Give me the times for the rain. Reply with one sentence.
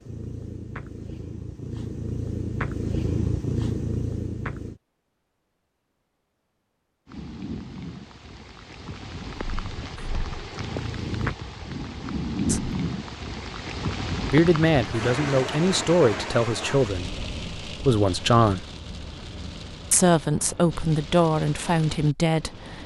You can hear the rain from 7.0 to 22.8 s.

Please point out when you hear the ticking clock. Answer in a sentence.
The ticking clock can't be heard in this clip.